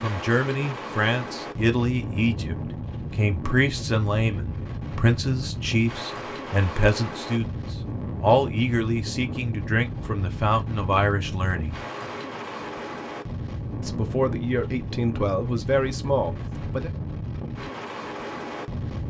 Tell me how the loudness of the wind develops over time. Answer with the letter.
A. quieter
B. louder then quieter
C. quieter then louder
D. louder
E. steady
E.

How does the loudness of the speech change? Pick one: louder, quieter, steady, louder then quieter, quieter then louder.
steady.